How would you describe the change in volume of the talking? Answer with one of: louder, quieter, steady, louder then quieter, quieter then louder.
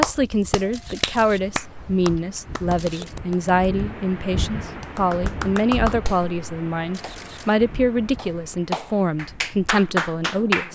steady.